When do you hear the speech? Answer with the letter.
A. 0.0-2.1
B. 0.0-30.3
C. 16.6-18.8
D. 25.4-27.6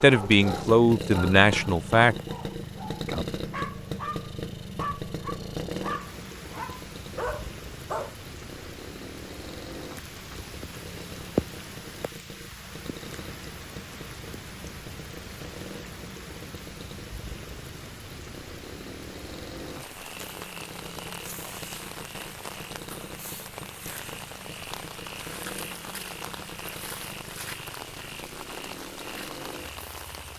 A.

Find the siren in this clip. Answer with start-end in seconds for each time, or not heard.
not heard.